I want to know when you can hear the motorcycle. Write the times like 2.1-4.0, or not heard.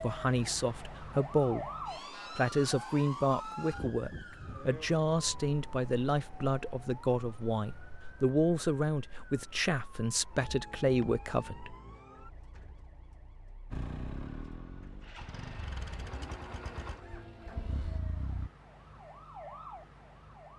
13.7-18.5.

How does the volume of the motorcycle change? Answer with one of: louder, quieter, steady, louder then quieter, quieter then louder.
steady.